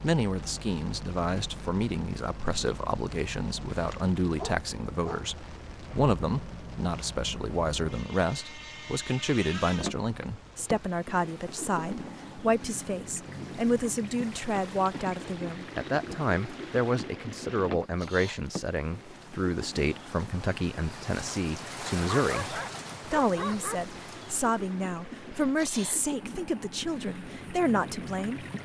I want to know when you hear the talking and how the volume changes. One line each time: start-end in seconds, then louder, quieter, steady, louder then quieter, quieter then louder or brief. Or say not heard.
0.0-28.4 steady.